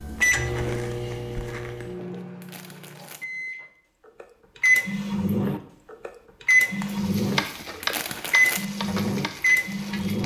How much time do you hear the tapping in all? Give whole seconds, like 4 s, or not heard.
3 s.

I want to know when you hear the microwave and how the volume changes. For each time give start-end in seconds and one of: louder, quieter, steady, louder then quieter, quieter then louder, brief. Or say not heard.
0.0-10.2 quieter then louder.